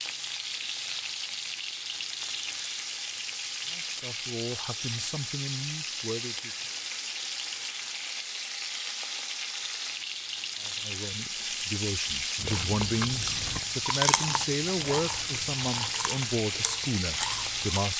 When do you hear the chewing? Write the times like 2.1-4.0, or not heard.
12.3-17.8.